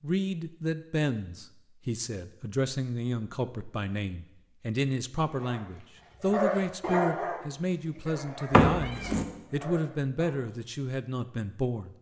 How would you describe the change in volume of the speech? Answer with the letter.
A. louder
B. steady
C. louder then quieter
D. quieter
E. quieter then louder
B.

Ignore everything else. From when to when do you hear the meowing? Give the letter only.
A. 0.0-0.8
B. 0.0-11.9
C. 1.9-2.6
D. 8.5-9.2
D.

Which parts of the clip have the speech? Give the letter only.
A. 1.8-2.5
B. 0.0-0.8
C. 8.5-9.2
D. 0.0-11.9
D.